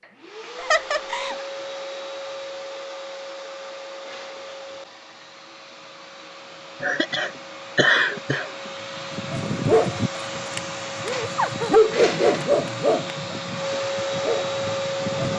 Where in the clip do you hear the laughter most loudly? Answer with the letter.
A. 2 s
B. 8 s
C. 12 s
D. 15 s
B.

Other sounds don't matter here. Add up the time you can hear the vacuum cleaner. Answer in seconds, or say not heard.
15 s.